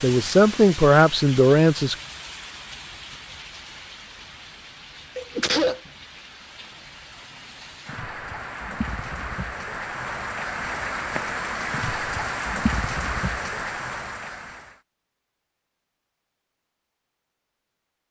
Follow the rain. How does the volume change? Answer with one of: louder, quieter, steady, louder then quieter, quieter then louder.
quieter then louder.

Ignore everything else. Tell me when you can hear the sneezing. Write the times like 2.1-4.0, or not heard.
5.2-5.9.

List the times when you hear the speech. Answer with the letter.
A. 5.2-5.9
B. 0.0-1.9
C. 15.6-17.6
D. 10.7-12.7
B.